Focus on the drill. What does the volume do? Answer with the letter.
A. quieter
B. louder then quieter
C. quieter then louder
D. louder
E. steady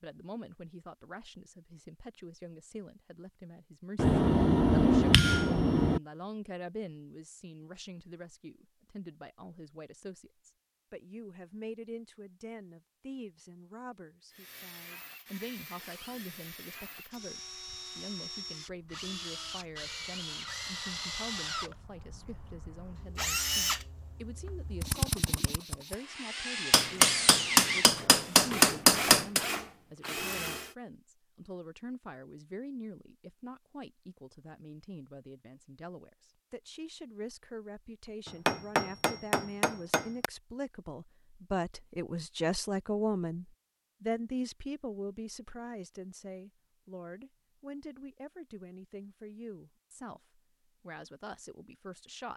D.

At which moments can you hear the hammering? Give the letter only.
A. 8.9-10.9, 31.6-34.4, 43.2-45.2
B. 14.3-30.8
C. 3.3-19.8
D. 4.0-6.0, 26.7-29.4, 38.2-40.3
D.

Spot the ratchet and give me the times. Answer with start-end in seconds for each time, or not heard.
not heard.